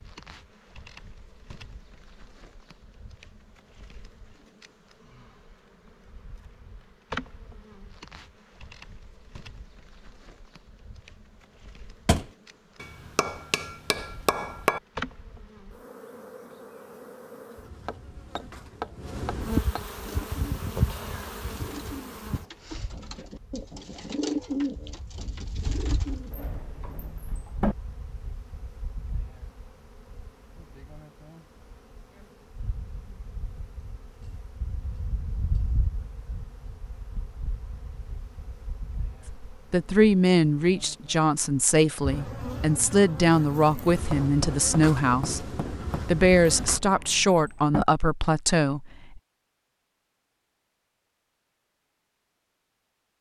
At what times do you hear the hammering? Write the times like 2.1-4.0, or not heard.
12.8-14.8, 17.9-19.9, 44.0-46.0.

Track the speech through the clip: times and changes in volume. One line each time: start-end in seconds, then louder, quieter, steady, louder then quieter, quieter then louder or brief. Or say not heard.
39.5-49.2 steady.